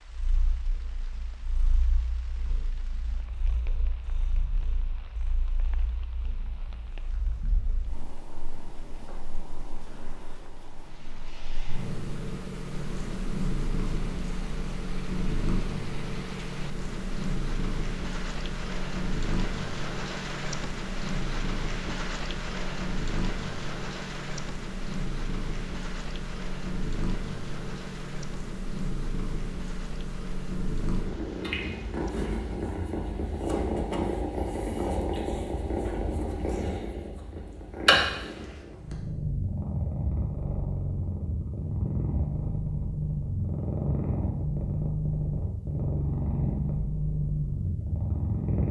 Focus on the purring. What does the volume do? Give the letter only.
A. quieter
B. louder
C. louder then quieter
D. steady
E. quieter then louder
B.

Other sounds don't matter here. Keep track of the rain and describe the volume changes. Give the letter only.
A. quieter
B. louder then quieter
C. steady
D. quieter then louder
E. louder
B.